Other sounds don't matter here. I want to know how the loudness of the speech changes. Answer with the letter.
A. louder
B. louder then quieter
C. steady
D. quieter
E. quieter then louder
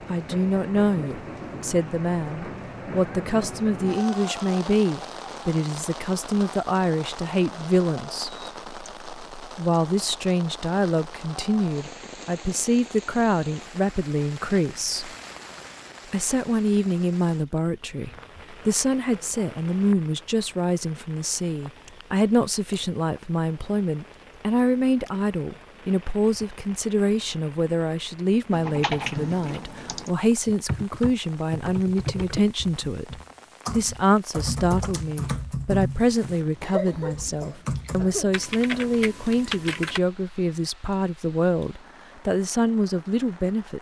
C.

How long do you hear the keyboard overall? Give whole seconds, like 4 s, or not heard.
11 s.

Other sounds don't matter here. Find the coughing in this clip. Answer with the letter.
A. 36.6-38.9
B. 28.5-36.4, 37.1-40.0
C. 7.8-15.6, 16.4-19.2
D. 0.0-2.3
A.